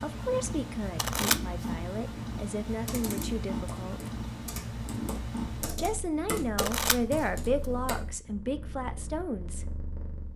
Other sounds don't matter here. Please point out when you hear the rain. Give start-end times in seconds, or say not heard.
not heard.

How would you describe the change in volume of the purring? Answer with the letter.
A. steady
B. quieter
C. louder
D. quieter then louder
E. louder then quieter
B.